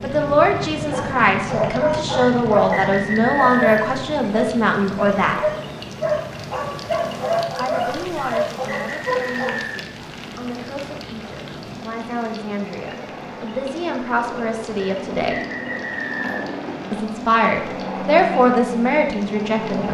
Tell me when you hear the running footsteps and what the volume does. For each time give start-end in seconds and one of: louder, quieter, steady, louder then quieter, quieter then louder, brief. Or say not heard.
not heard.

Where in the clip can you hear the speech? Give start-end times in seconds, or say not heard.
0.0-5.3, 7.5-15.4, 16.9-19.8.